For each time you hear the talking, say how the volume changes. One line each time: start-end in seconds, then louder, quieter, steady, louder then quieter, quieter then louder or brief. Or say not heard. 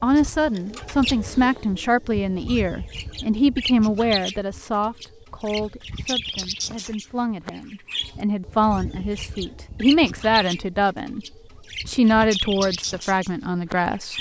0.0-11.2 quieter then louder
11.8-14.1 brief.